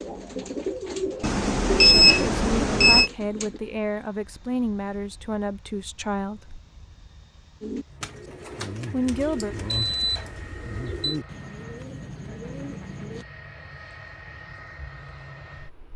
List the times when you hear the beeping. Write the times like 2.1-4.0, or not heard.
1.2-3.1, 9.2-11.2.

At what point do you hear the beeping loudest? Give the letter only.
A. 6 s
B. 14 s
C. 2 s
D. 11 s
C.